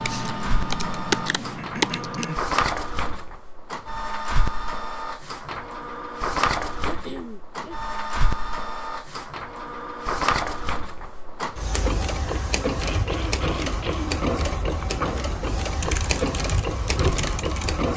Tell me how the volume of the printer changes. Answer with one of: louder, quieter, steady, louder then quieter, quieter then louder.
steady.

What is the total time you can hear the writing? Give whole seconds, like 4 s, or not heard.
not heard.